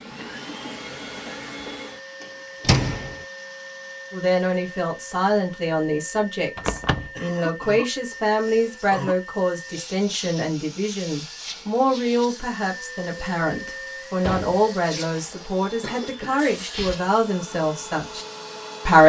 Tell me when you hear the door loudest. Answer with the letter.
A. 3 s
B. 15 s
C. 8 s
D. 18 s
A.